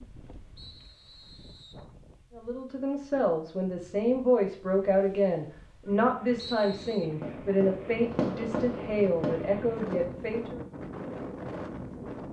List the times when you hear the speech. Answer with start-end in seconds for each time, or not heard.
2.4-10.6.